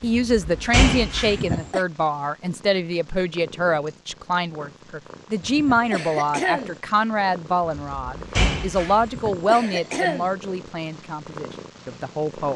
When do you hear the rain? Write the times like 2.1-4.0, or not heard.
not heard.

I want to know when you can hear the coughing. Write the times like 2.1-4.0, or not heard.
1.2-1.9, 5.4-6.8, 9.0-10.3.